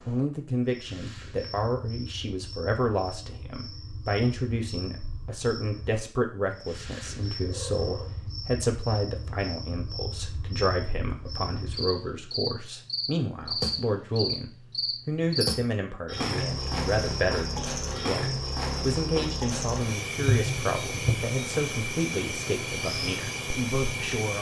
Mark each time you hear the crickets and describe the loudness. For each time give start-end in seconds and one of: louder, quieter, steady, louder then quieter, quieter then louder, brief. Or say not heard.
0.0-24.3 louder.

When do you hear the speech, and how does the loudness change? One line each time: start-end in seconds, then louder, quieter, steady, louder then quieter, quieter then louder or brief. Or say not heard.
0.1-24.3 steady.